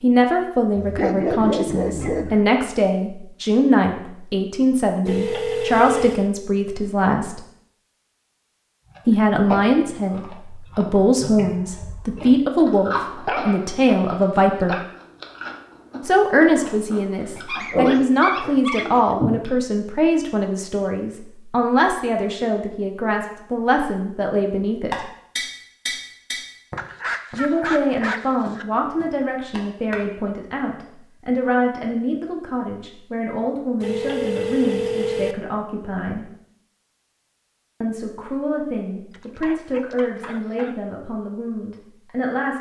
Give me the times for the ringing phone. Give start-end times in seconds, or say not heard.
5.0-6.3, 33.8-35.4.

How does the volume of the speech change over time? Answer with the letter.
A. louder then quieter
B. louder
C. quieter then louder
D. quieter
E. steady
D.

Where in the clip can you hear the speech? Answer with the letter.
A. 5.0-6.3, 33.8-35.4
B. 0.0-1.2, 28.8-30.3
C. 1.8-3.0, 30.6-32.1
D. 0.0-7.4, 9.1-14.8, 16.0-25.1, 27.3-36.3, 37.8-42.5
D.